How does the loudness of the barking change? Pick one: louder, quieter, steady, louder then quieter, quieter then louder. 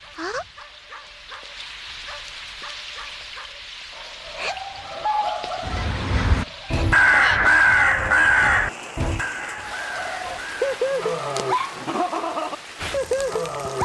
louder.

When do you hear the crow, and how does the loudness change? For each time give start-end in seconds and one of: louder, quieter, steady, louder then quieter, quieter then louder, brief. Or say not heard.
5.6-10.8 louder then quieter.